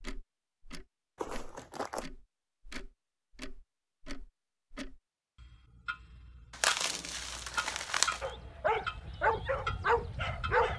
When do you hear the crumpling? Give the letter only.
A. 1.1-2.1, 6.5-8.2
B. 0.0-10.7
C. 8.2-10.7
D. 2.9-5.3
A.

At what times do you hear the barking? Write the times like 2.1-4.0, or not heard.
8.2-10.7.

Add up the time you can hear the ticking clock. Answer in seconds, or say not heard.
11 s.